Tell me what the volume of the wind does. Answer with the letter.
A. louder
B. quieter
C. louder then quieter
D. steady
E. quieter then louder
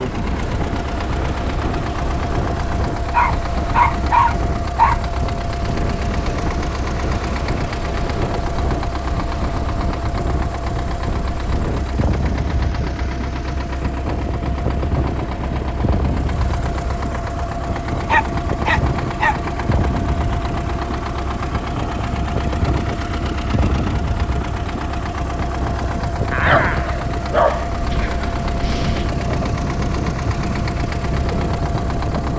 D.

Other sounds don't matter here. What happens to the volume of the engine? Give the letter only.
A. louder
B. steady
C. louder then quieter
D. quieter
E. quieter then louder
B.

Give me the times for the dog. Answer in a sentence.
The dog can be heard from 3.1 to 5.0 s, from 18.1 to 19.4 s and from 26.3 to 27.7 s.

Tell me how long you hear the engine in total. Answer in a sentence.
The engine can be heard for 32 seconds in total.